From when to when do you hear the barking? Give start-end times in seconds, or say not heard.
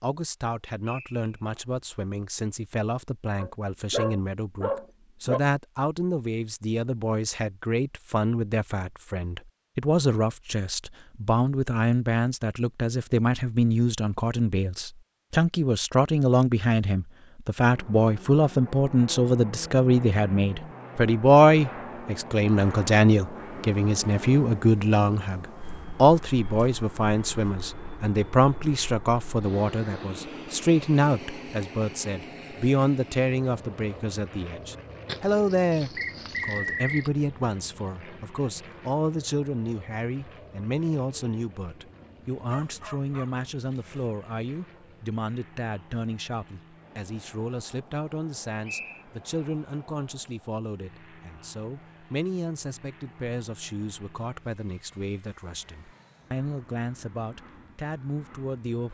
3.4-5.4, 35.0-37.1, 42.5-44.0.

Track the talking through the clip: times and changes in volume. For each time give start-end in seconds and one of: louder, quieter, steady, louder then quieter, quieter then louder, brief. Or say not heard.
0.0-58.8 louder then quieter.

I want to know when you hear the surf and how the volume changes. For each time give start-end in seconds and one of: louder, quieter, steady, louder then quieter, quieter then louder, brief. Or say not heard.
not heard.